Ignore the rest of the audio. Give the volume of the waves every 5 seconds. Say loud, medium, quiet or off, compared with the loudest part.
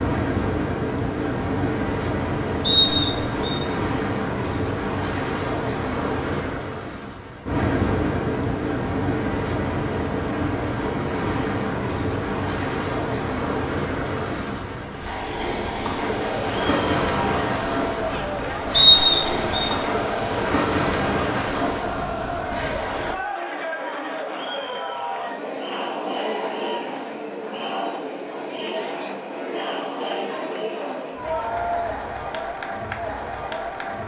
loud, loud, loud, loud, loud, off, off.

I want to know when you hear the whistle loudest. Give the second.
19 s.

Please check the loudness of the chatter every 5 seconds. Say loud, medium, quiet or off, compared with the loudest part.
off, off, off, loud, loud, loud, loud.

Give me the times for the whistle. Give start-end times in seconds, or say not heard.
2.6-3.4, 18.7-19.7.